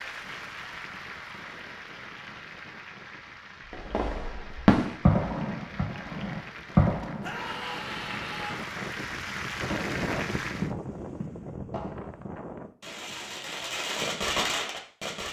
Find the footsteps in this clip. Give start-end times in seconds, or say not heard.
not heard.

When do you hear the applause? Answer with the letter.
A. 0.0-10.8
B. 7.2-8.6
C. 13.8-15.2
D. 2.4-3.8
A.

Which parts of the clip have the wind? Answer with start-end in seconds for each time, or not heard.
0.0-12.8.